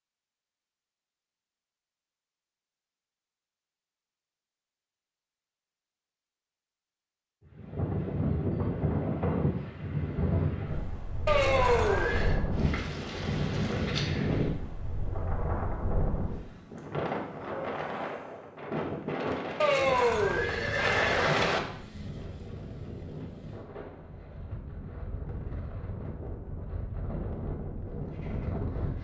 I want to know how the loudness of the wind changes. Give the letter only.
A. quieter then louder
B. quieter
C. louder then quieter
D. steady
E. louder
B.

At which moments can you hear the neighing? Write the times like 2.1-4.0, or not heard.
11.2-12.4, 19.6-21.6.